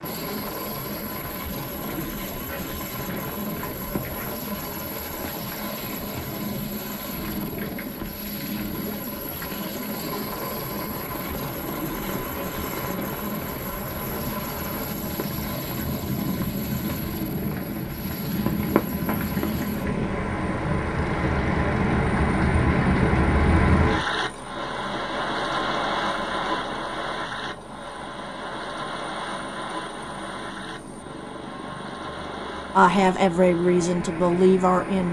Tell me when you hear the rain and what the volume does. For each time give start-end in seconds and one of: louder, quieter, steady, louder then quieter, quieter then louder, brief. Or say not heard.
0.0-35.0 louder then quieter.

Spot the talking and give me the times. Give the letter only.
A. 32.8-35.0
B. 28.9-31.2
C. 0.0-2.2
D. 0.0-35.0
A.